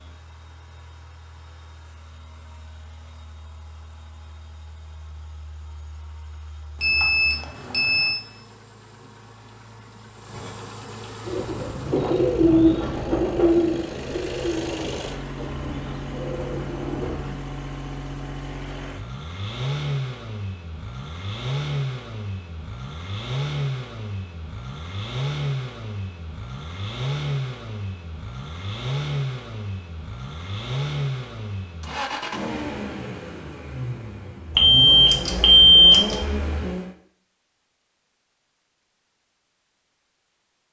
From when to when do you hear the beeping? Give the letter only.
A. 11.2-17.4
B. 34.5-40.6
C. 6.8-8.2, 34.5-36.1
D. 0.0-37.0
C.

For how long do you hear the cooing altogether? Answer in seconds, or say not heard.
6 s.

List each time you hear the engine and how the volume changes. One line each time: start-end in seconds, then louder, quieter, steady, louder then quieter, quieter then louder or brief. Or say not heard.
0.0-37.0 louder.